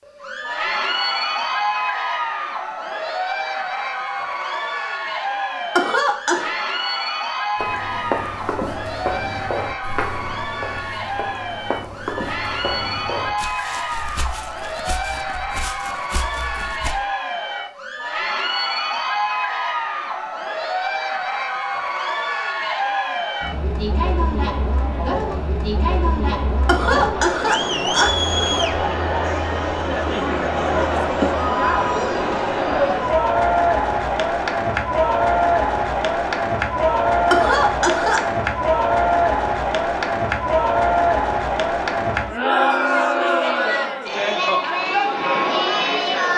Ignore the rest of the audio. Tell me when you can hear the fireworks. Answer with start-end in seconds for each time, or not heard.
not heard.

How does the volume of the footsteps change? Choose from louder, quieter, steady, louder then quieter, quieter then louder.
quieter.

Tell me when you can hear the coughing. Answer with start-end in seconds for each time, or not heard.
5.8-6.5, 26.6-28.1, 37.3-38.2.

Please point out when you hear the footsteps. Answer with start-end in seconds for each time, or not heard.
7.5-16.9.